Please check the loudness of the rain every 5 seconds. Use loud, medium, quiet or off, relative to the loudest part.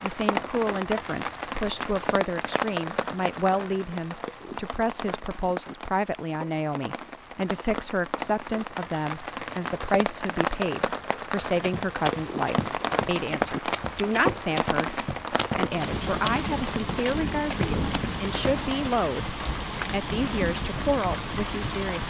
loud, medium, loud, loud, loud.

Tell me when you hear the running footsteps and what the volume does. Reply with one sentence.
You can hear the running footsteps from 11.4 to 18.7 s, at a steady volume.